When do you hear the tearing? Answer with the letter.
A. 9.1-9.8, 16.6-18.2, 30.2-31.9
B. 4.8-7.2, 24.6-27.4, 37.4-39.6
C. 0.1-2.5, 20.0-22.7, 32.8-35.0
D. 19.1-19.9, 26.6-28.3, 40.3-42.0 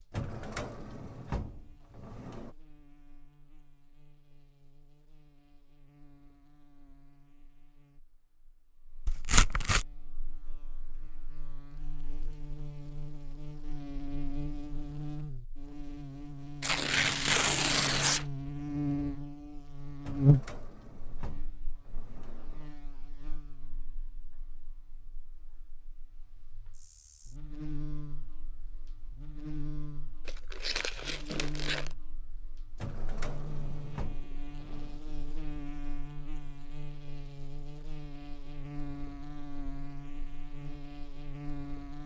A.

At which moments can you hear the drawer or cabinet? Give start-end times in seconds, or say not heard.
0.1-2.5, 20.0-22.7, 32.8-35.0.